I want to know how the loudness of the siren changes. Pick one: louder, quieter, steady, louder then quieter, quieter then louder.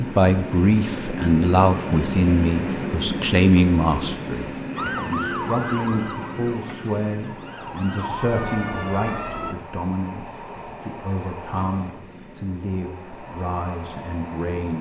quieter then louder.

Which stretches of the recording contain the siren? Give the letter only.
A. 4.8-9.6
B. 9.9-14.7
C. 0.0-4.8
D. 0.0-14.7
A.